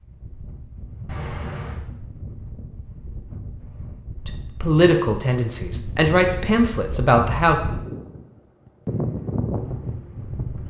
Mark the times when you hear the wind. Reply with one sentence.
The wind can be heard from 0.0 to 10.6 s.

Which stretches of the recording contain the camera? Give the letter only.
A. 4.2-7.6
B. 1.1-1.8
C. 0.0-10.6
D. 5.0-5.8
B.